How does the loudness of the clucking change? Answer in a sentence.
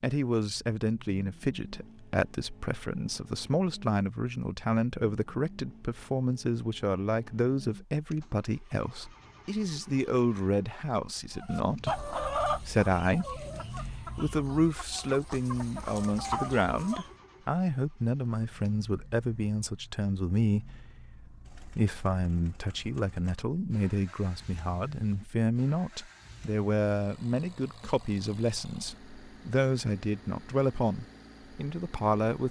The volume of the clucking goes down, then up.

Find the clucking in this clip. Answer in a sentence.
The clucking can be heard from 11.3 to 17.1 s.